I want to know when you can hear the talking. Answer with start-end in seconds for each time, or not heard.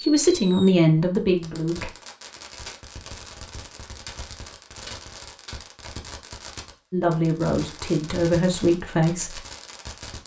0.0-1.9, 6.9-9.4.